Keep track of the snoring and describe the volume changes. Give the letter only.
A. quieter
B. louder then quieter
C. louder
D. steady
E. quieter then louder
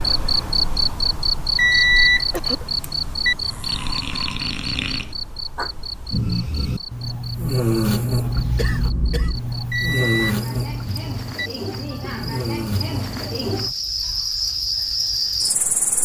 B.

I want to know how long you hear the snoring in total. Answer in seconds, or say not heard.
11 s.